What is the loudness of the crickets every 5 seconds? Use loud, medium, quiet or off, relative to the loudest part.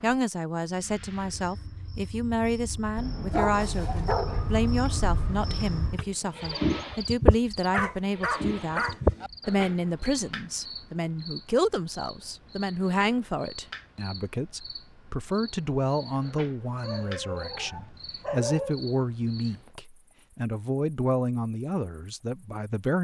quiet, loud, quiet, quiet, off.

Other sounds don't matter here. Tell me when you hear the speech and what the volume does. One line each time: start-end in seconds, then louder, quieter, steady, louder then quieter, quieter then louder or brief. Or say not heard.
0.0-22.9 steady.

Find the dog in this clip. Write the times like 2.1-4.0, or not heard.
3.0-5.9, 7.7-9.3, 16.8-18.8.